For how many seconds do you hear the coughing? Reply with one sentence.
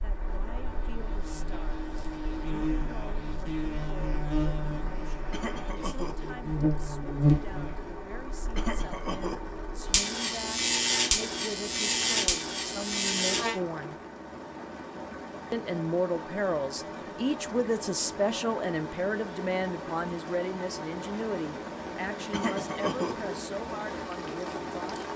You can hear the coughing for 3 seconds altogether.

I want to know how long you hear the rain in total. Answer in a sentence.
The rain can be heard for 25 seconds in total.